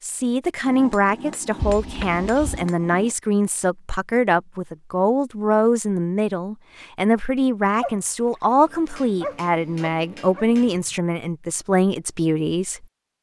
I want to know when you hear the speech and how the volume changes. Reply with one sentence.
You can hear the speech from 0.0 to 12.8 s, at a steady volume.